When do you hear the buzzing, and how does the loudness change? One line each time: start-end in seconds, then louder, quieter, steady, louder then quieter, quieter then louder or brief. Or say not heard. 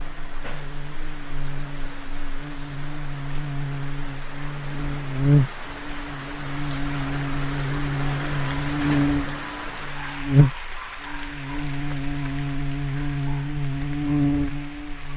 0.0-15.1 louder.